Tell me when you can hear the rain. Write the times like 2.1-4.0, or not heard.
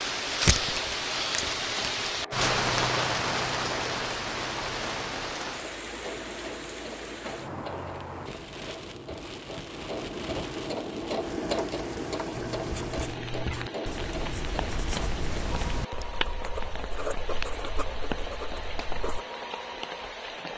0.0-20.5.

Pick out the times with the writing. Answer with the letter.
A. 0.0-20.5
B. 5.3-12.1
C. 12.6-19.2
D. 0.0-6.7
C.